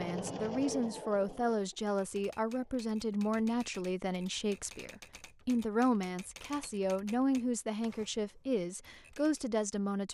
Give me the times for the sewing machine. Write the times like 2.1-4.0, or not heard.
0.0-2.7.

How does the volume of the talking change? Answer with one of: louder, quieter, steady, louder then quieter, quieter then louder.
steady.